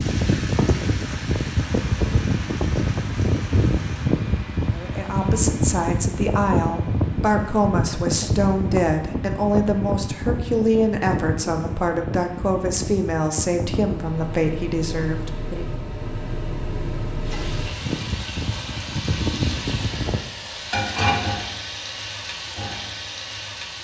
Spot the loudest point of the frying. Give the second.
21 s.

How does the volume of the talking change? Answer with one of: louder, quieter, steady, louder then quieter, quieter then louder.
steady.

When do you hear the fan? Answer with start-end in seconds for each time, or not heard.
0.0-20.2.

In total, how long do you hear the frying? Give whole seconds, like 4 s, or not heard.
11 s.